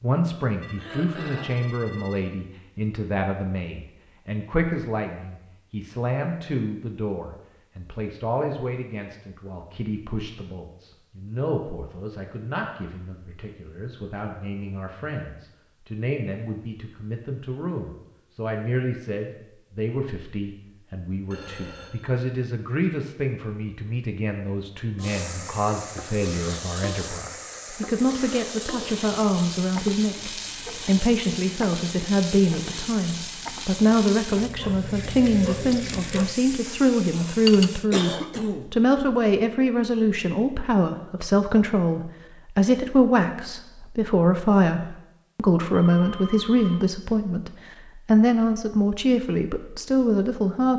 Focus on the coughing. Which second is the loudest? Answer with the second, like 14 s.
38 s.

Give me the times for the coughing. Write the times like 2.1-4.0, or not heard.
0.8-1.6, 37.5-38.8.